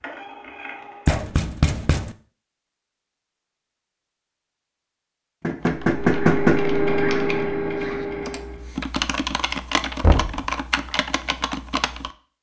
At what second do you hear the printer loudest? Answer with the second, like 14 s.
7 s.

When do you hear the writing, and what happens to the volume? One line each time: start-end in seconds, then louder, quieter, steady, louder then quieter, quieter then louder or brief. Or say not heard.
not heard.